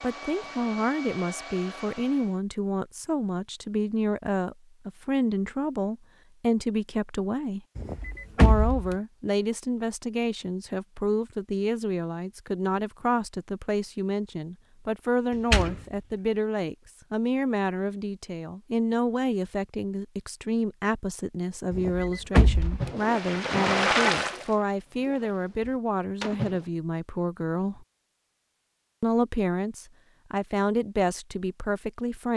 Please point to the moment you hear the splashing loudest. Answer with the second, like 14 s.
24 s.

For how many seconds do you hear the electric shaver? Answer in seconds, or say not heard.
not heard.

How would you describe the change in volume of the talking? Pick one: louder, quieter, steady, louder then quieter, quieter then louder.
steady.